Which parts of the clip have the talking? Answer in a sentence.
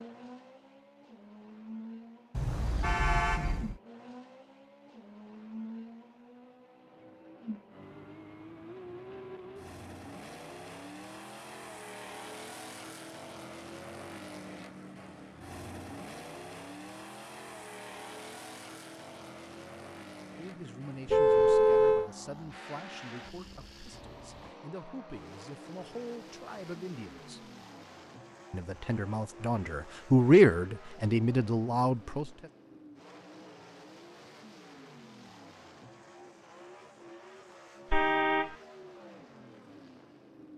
You can hear the talking from 20.4 to 27.4 s and from 28.5 to 32.3 s.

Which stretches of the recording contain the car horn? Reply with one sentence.
The car horn can be heard from 2.4 to 3.8 s, from 21.1 to 22.1 s and from 37.9 to 38.5 s.